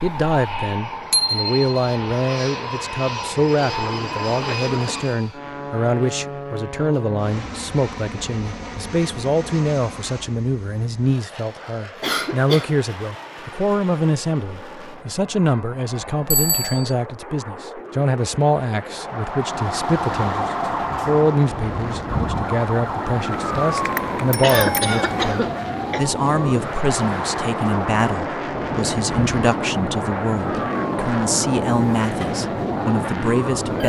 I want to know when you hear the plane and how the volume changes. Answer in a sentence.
You can hear the plane from 0.0 to 33.8 s, getting quieter then louder.